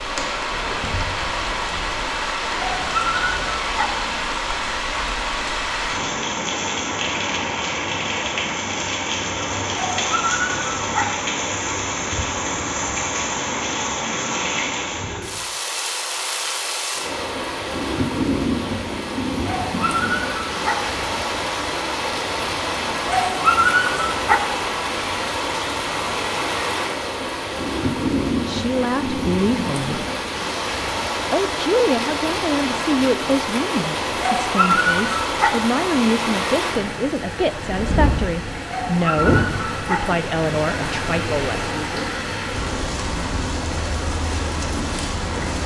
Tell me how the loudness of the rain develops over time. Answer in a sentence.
The loudness of the rain stays about the same.